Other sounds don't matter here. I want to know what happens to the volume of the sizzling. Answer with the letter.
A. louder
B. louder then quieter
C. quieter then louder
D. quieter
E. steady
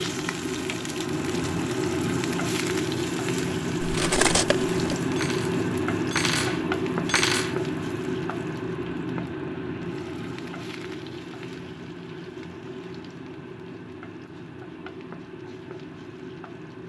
D.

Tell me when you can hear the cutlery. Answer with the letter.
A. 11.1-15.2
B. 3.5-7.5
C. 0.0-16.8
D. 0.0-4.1
B.